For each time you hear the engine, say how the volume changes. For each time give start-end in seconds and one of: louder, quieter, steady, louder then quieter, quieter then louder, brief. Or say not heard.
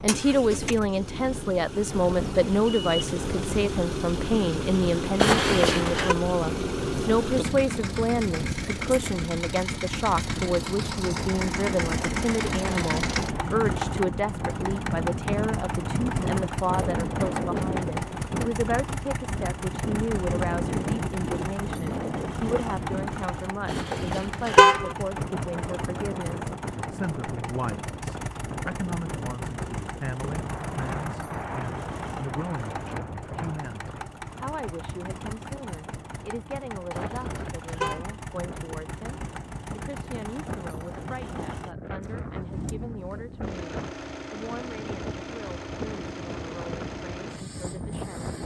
0.0-48.4 quieter.